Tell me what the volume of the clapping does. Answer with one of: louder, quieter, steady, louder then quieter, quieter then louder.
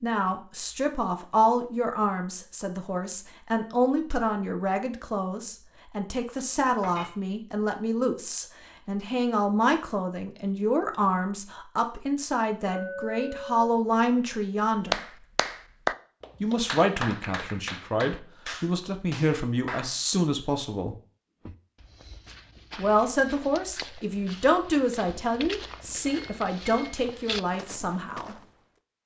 quieter.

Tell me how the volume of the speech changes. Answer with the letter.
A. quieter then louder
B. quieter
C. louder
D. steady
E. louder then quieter
D.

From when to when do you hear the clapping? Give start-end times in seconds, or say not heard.
14.8-20.0.